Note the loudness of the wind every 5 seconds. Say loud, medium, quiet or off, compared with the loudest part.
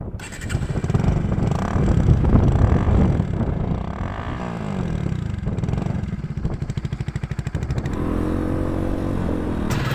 loud, medium.